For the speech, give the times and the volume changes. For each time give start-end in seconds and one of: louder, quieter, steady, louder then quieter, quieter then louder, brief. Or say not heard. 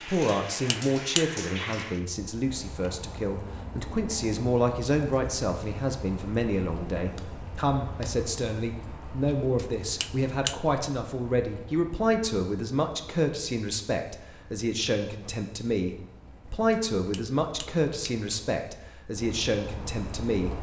0.0-20.5 steady.